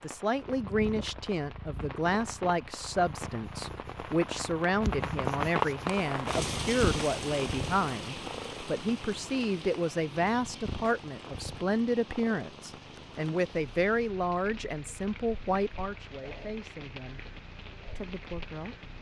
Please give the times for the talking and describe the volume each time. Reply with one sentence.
You can hear the talking from 0.0 to 17.2 s, at a steady volume; and briefly from 17.9 to 18.9 s.